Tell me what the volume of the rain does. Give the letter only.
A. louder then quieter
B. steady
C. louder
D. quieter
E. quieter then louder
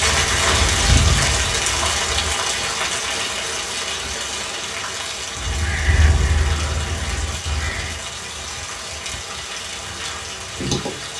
D.